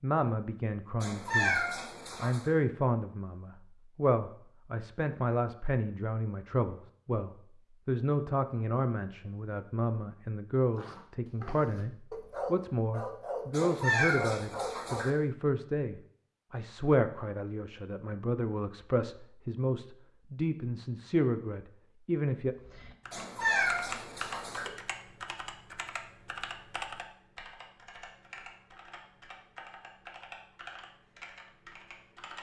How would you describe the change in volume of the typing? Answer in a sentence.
The volume of the typing goes down.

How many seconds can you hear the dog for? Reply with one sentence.
You can hear the dog for 4 seconds altogether.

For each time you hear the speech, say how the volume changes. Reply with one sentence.
The speech can be heard from 0.0 to 22.6 s, at a steady volume.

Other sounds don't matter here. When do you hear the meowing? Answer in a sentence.
You can hear the meowing from 1.0 to 2.5 s, from 13.5 to 15.1 s and from 23.1 to 24.7 s.